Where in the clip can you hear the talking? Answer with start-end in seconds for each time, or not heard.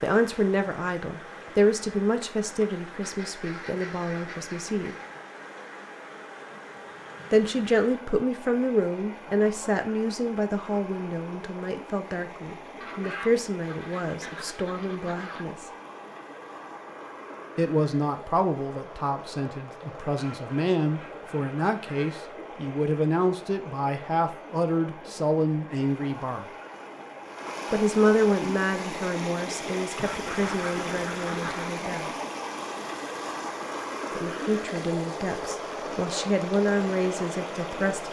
0.0-5.0, 7.3-15.7, 17.6-26.4, 27.7-32.0, 34.1-38.0.